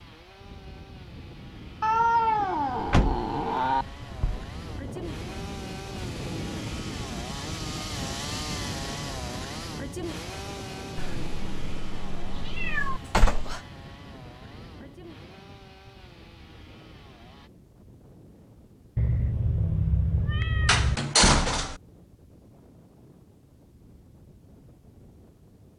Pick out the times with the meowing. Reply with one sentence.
The meowing can be heard from 1.8 to 3.9 s, from 10.9 to 13.0 s and from 18.9 to 21.0 s.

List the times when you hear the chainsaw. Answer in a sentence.
The chainsaw can be heard from 0.0 to 17.5 s.